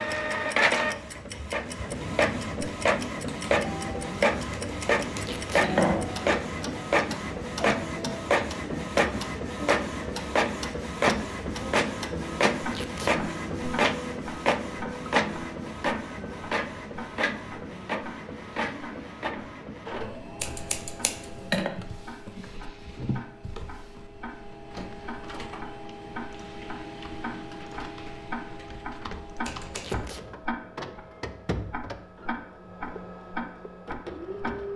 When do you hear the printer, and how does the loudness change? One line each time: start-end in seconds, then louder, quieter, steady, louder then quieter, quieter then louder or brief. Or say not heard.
0.0-34.7 quieter.